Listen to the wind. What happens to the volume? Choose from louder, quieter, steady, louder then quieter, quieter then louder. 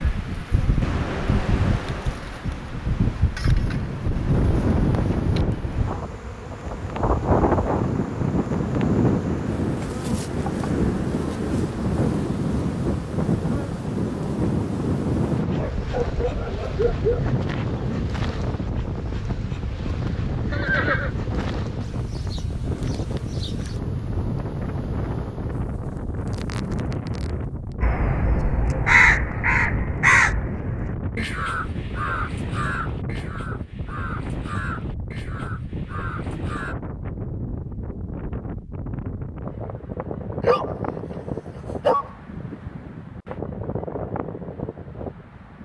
quieter.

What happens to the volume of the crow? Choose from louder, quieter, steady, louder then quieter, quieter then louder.
quieter.